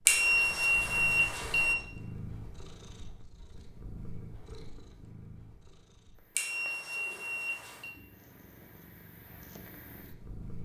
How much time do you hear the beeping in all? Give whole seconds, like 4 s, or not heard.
3 s.